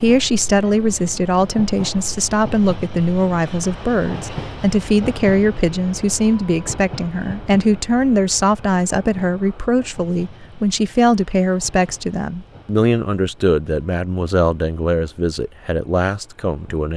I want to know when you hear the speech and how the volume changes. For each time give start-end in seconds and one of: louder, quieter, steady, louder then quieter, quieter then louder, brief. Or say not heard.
0.0-16.9 steady.